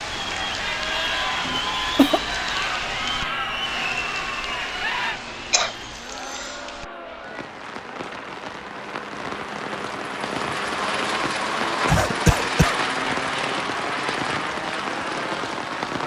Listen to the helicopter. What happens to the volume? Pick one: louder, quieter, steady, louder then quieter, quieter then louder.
louder.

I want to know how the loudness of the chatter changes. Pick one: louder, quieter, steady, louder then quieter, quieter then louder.
quieter.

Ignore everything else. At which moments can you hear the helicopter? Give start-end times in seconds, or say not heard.
0.1-16.0.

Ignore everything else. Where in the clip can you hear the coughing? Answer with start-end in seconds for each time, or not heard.
1.4-2.2, 5.5-6.5, 11.8-12.8.